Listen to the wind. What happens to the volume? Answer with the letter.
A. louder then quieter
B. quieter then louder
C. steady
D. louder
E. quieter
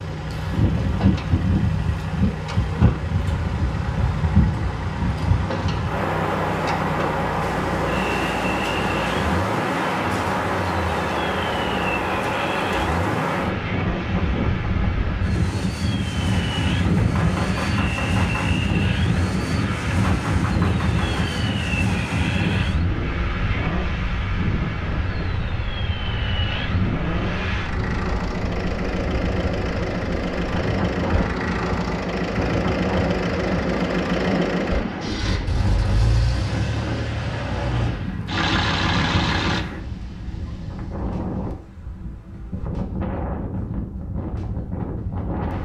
E.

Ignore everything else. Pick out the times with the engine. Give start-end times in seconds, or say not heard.
0.0-39.6.